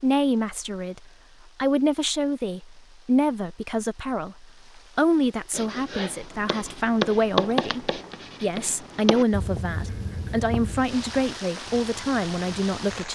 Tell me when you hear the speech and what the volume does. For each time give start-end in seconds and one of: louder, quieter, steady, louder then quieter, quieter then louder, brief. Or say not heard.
0.0-13.1 steady.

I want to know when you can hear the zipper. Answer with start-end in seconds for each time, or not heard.
not heard.